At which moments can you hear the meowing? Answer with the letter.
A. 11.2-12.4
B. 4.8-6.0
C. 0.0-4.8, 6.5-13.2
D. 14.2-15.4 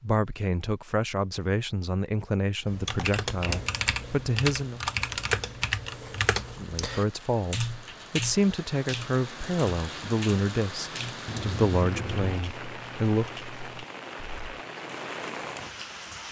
A.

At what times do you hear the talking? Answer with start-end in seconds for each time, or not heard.
0.0-4.8, 6.5-13.2.